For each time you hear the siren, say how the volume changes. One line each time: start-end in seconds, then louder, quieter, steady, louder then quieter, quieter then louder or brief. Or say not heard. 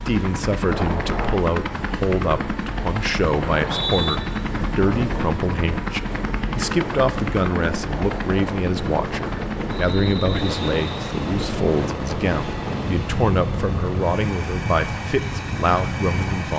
not heard.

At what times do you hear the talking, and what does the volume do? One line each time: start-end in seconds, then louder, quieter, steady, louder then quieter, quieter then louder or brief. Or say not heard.
0.0-16.5 steady.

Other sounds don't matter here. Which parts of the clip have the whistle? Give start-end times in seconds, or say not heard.
3.5-4.2, 9.7-11.0.